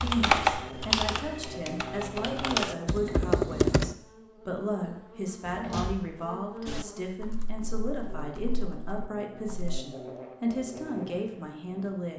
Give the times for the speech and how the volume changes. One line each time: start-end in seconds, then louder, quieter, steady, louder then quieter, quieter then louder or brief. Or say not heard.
0.0-12.1 steady.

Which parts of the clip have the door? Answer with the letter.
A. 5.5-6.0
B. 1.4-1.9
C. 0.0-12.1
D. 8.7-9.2
A.